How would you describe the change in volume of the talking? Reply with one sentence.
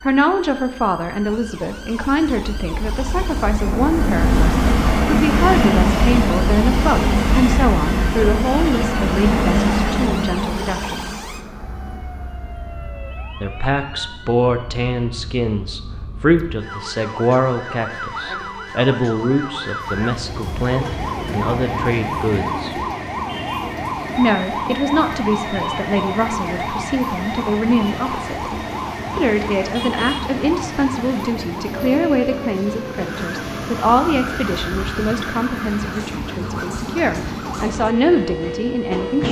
The volume of the talking stays about the same.